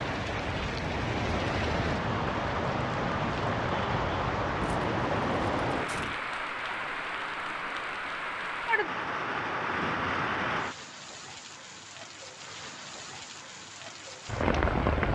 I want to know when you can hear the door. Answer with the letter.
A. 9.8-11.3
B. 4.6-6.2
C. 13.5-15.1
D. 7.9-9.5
B.